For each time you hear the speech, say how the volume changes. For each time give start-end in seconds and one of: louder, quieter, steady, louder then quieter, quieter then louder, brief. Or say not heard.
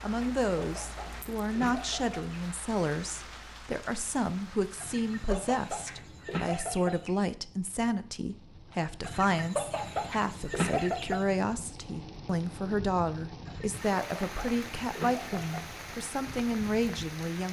0.0-17.4 steady.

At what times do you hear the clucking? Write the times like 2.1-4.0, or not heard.
0.2-2.4, 4.8-7.1, 9.0-11.3, 13.4-15.5.